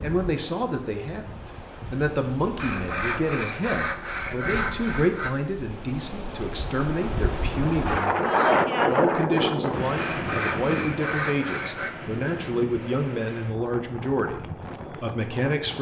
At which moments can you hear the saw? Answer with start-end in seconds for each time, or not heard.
2.5-5.3, 9.9-11.9.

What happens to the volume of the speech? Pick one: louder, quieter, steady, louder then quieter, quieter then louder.
steady.